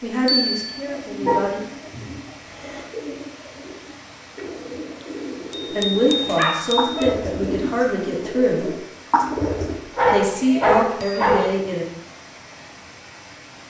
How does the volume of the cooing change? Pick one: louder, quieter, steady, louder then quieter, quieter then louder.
louder.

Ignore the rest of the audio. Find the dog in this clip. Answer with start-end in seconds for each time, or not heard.
1.2-2.8, 6.3-7.1, 9.8-11.6.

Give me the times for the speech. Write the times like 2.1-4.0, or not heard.
0.0-1.6, 5.7-8.8, 10.1-11.8.